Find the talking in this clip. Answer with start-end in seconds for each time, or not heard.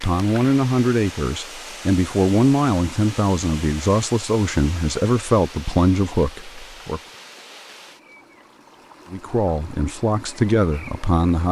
0.0-7.0, 9.1-11.4.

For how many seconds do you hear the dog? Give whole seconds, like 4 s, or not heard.
not heard.